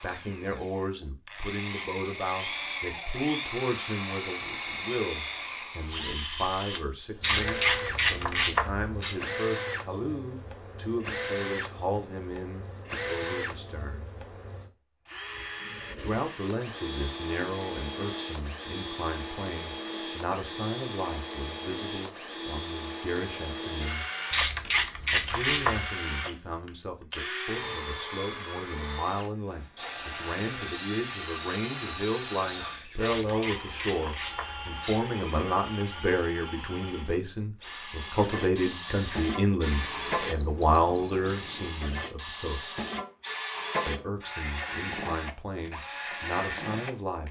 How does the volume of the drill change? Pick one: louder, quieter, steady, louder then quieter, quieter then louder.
steady.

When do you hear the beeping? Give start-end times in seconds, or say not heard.
39.7-41.8.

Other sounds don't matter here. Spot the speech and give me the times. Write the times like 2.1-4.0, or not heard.
0.0-14.1, 16.0-24.1, 25.1-42.7, 43.9-47.2.